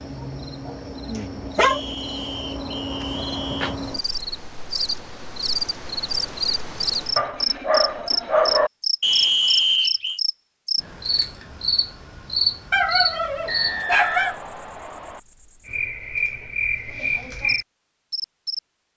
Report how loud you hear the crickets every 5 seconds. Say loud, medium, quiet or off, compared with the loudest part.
medium, loud, loud, loud.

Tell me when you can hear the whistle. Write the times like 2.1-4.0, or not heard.
1.6-3.8, 9.0-10.2, 13.4-15.2.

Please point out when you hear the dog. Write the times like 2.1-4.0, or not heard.
0.1-1.8, 7.2-8.7, 12.7-14.3.